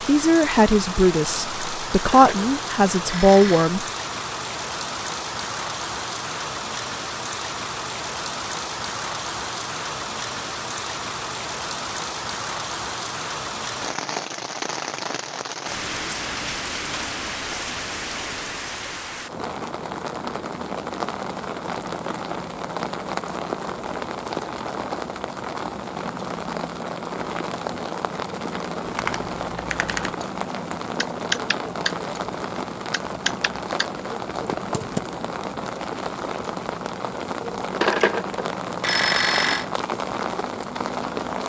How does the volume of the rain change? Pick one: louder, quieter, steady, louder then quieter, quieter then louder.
steady.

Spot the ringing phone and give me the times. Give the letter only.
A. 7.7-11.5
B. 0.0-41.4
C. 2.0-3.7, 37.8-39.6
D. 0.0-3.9
C.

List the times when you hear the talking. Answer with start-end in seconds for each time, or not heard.
0.0-3.9.